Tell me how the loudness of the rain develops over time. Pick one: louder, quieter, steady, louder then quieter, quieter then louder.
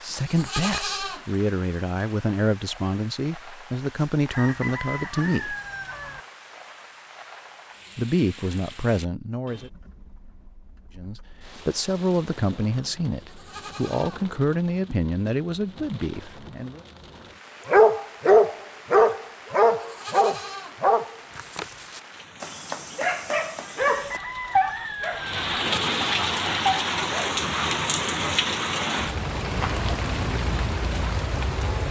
louder.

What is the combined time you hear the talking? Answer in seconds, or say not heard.
13 s.